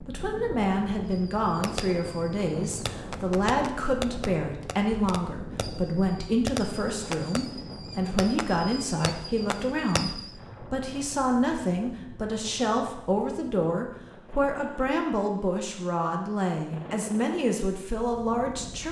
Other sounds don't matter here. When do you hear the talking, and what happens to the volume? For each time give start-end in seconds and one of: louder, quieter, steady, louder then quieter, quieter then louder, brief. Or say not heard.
0.1-18.8 steady.